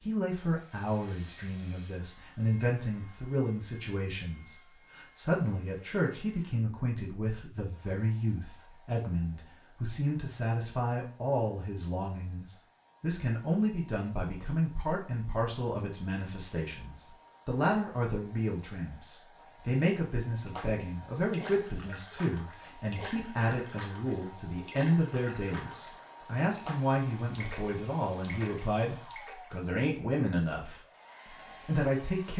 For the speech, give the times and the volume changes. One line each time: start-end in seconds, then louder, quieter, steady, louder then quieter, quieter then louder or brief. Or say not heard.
0.0-30.8 steady
31.6-32.3 brief.